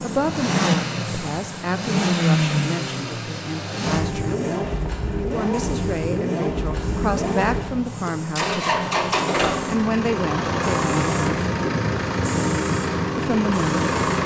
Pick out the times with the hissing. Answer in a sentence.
You can hear the hissing from 0.0 to 14.2 s.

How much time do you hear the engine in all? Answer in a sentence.
You can hear the engine for 14 seconds altogether.